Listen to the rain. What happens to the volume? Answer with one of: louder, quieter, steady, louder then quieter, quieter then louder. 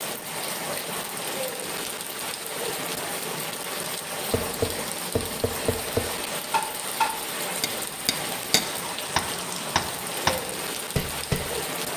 steady.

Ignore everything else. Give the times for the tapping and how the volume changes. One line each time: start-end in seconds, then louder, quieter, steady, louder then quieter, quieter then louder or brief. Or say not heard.
4.3-11.5 quieter then louder.